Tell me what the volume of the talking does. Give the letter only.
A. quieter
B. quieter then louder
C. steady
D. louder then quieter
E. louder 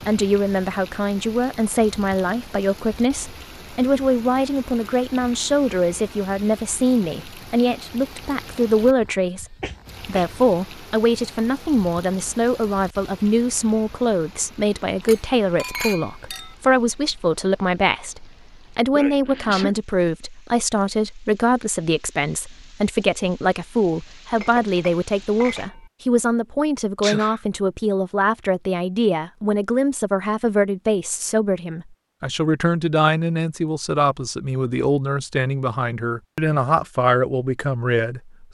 C.